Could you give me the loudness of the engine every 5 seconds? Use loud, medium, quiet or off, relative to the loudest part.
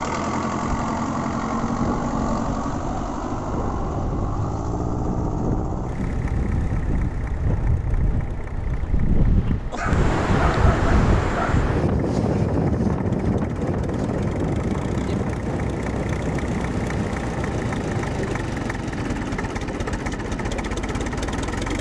loud, medium, medium, loud, loud.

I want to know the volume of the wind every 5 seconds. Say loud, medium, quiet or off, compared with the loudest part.
medium, medium, loud, medium, off.